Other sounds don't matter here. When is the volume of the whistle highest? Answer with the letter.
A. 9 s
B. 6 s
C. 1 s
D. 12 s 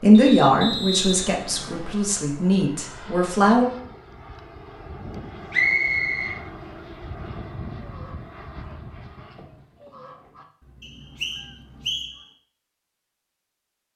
B.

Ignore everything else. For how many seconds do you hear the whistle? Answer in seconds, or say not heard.
4 s.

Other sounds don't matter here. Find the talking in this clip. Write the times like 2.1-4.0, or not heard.
0.0-3.6.